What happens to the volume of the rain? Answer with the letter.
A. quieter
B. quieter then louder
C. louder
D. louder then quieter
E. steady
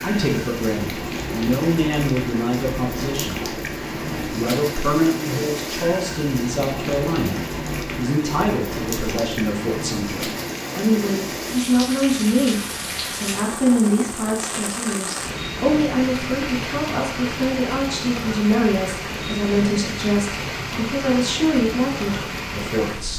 E.